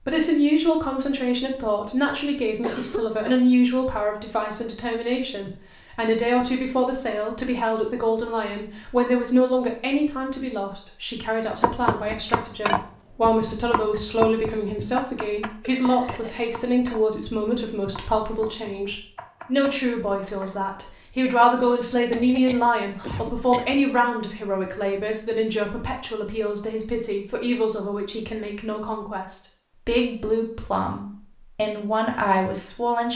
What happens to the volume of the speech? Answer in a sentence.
The volume of the speech stays about the same.